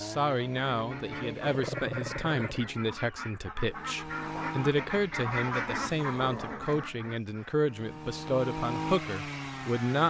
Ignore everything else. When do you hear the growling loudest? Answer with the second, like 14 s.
2 s.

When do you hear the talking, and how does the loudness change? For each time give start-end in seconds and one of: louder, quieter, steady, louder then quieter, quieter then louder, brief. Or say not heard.
0.0-10.0 steady.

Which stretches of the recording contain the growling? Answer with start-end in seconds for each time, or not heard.
1.4-2.5, 6.1-7.5.